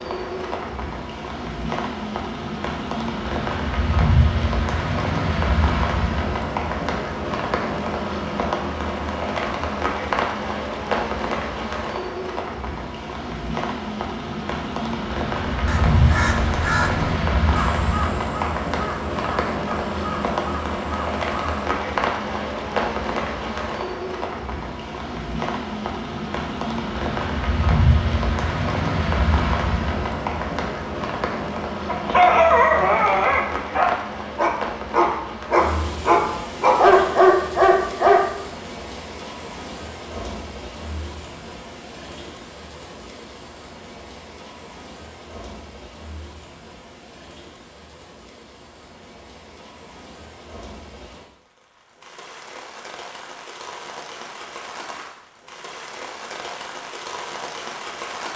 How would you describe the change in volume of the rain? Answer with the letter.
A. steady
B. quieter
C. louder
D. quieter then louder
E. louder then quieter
B.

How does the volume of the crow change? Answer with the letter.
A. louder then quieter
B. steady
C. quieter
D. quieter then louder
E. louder
C.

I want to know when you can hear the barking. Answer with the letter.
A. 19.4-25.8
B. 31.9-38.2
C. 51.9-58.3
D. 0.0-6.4
B.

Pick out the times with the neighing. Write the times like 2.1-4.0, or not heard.
not heard.